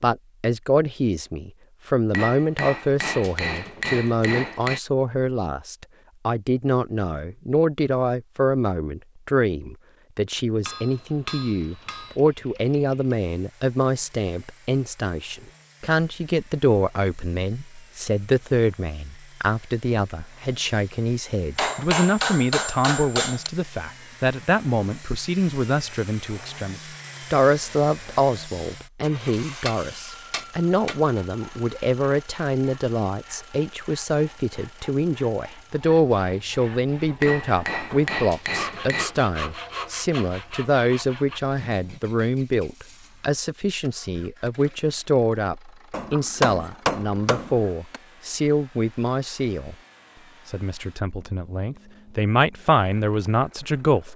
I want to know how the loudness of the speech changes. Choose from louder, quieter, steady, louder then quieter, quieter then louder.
steady.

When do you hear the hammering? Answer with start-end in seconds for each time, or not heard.
2.1-4.8, 10.7-12.2, 21.6-23.5, 29.6-31.0, 37.2-39.1, 45.9-48.0.